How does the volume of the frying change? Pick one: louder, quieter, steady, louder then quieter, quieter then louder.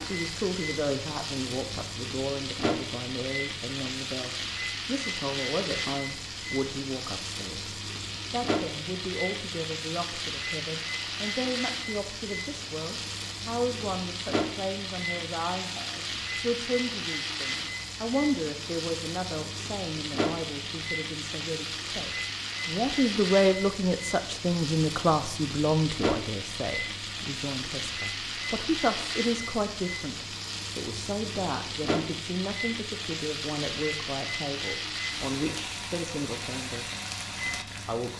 steady.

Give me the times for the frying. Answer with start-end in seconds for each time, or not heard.
0.0-38.1.